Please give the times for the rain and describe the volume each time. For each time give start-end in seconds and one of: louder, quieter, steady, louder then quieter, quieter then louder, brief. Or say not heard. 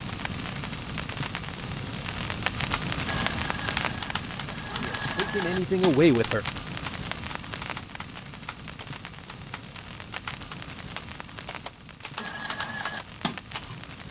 0.0-14.0 quieter.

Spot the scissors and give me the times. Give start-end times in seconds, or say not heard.
not heard.